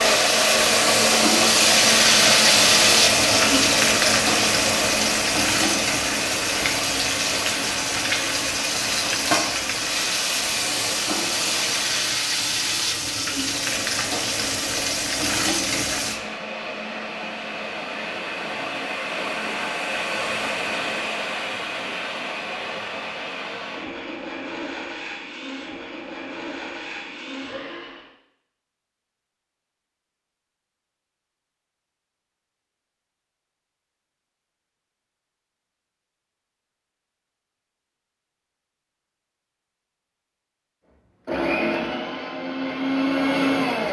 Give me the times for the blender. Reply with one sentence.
The blender can be heard from 0.0 to 12.2 s, from 13.4 to 28.1 s and from 41.2 to 43.8 s.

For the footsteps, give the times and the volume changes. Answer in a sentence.
The footsteps can't be heard in this clip.